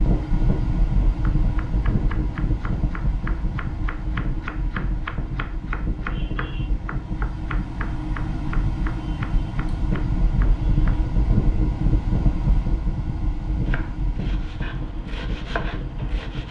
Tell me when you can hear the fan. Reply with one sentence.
You can hear the fan from 0.0 to 16.4 s.